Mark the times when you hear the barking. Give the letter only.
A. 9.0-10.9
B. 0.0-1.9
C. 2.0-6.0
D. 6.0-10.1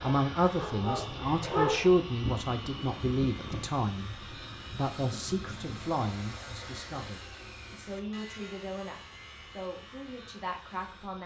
B.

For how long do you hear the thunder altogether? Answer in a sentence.
You can hear the thunder for 4 seconds altogether.